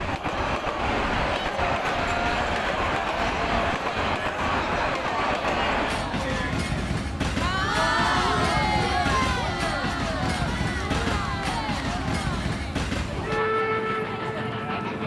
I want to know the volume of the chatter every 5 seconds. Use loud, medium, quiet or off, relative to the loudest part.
loud, loud, medium.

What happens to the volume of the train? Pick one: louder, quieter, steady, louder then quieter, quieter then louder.
steady.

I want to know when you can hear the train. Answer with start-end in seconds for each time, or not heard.
0.0-15.0.